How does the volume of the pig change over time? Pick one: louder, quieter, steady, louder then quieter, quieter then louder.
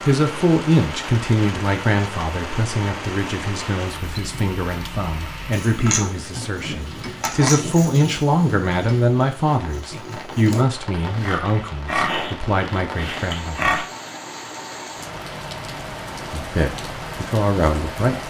quieter then louder.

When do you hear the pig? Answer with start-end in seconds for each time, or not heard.
5.5-13.8.